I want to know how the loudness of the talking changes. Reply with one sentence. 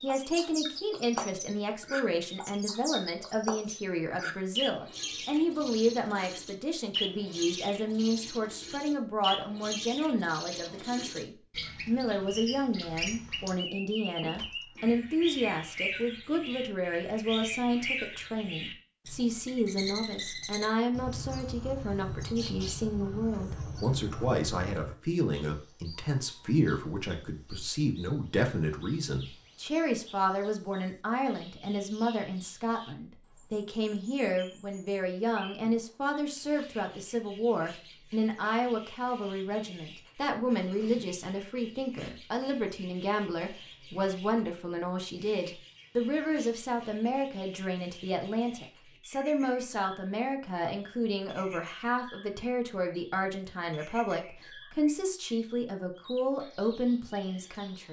The loudness of the talking stays about the same.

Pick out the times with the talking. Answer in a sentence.
The talking can be heard from 0.0 to 57.8 s.